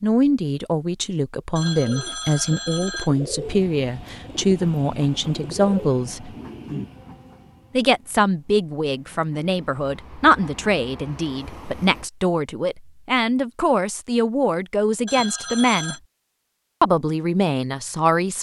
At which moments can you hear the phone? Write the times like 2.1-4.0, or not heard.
1.6-3.1, 15.1-16.0.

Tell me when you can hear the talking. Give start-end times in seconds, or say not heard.
0.0-6.3, 7.7-15.9, 16.8-18.3.